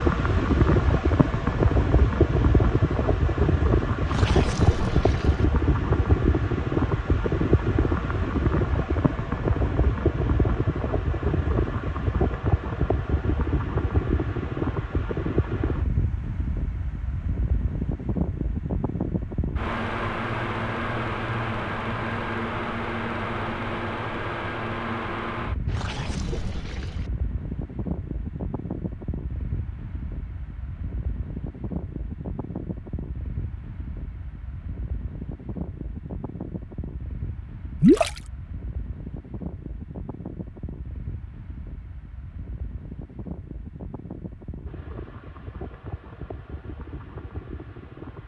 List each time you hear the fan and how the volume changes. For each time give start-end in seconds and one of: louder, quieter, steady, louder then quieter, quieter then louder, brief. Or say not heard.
0.0-48.2 quieter.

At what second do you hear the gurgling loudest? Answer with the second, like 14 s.
38 s.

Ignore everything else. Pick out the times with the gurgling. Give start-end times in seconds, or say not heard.
4.0-5.5, 25.6-27.1, 37.8-38.2.